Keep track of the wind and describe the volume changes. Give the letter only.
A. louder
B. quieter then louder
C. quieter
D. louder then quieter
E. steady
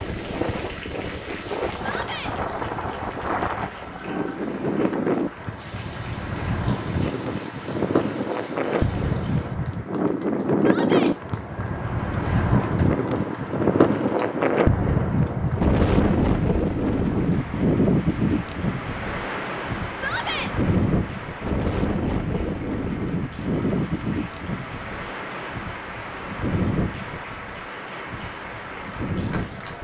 D.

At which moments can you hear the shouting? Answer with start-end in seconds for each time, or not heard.
1.8-2.4, 10.6-11.2, 19.9-20.5.